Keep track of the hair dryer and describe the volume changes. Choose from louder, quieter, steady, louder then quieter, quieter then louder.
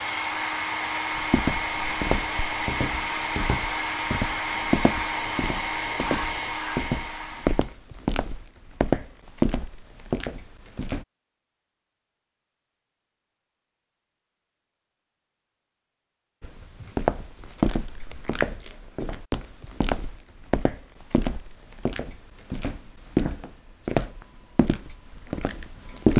steady.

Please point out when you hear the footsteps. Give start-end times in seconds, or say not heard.
1.1-11.1, 16.4-26.1.